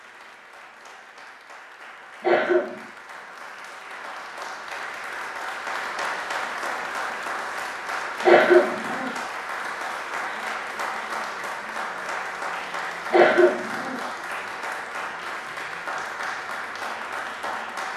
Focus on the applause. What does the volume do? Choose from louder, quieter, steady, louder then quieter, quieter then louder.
louder.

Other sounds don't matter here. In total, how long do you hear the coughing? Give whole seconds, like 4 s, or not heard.
2 s.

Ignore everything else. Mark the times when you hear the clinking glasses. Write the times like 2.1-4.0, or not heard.
not heard.